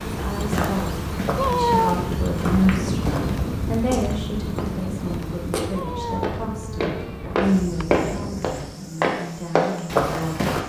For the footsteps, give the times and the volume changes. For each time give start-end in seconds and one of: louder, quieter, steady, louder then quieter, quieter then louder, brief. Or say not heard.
0.3-10.6 louder.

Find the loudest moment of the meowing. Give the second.
2 s.